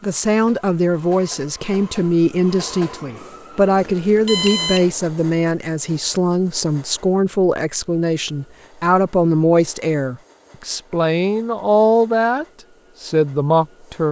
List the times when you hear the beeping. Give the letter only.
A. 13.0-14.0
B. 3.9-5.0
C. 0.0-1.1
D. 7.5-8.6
B.